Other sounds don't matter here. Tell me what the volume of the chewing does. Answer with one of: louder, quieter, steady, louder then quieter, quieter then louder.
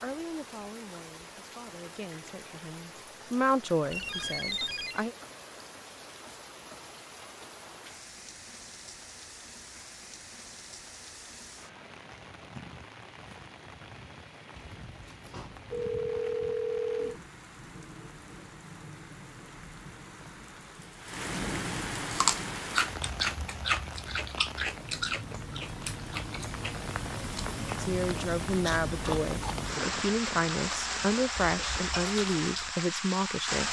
quieter.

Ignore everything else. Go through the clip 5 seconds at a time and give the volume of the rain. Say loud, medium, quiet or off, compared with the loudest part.
quiet, quiet, quiet, quiet, medium, loud, loud.